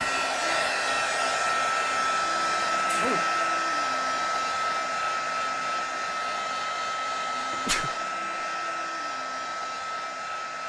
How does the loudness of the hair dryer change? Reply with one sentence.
The loudness of the hair dryer goes down.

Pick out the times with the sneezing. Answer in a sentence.
You can hear the sneezing from 2.9 to 3.3 s and from 7.5 to 8.0 s.